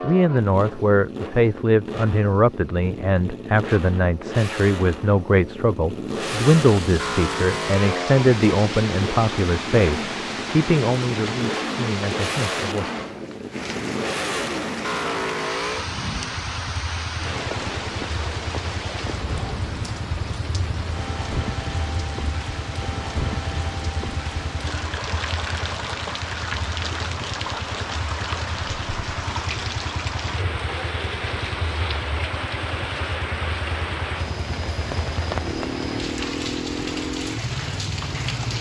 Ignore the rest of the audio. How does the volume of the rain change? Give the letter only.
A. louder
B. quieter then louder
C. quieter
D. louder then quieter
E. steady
E.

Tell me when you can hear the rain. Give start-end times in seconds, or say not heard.
6.0-38.5.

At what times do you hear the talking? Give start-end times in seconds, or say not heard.
0.0-12.8.